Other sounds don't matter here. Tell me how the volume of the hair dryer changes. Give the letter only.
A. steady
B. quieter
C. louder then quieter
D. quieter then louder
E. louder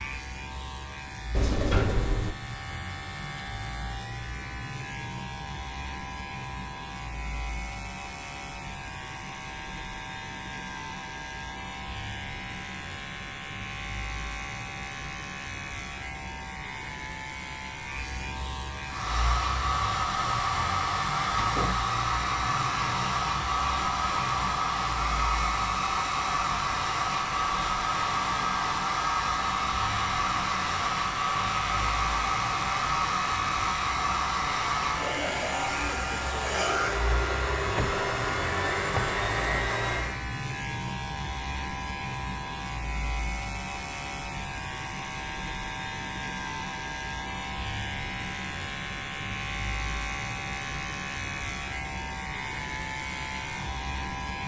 A.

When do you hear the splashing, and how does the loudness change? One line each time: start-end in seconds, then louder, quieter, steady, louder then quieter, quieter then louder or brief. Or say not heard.
not heard.